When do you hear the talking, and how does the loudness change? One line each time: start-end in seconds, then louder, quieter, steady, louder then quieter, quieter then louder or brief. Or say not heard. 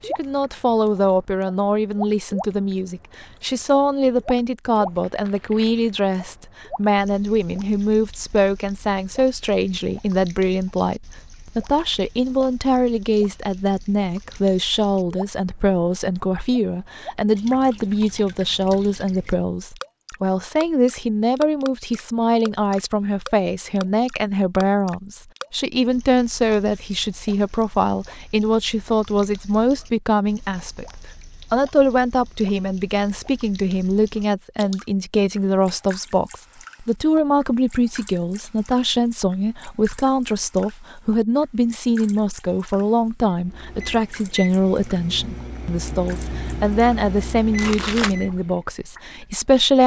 0.1-49.8 steady.